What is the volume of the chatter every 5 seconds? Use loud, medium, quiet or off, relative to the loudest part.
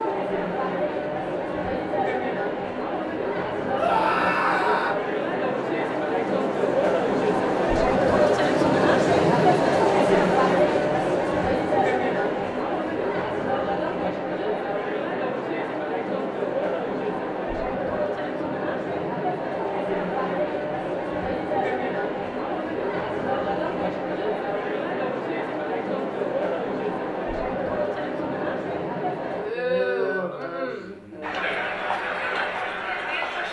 medium, loud, loud, medium, medium, medium, medium.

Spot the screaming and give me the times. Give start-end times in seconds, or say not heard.
3.8-5.0.